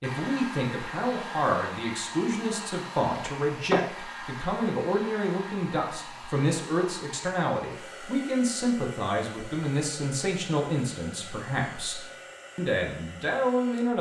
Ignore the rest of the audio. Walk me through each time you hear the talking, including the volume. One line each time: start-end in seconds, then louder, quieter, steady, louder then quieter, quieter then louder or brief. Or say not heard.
0.0-13.9 steady.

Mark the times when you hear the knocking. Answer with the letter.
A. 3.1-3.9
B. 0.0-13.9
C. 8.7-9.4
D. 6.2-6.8
A.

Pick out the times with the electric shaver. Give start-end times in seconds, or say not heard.
not heard.